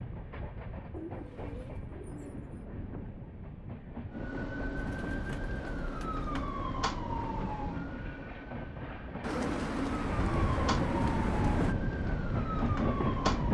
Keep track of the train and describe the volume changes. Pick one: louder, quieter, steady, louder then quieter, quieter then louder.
louder.